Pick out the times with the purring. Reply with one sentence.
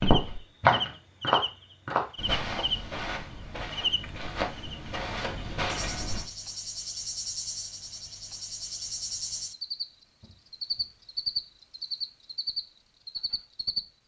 You can't hear the purring here.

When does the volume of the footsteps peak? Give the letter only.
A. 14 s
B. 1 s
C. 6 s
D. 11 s
B.